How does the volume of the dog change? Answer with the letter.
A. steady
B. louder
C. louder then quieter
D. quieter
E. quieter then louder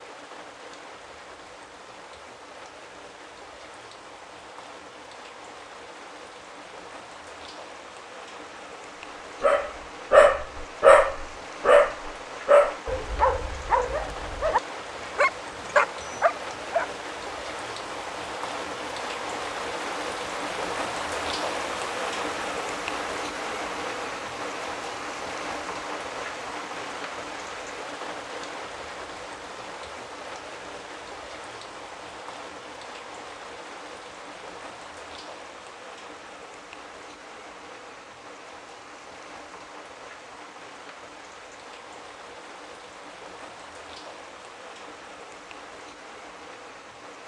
E.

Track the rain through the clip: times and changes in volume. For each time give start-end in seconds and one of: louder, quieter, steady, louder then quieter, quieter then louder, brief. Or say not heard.
0.0-47.2 louder then quieter.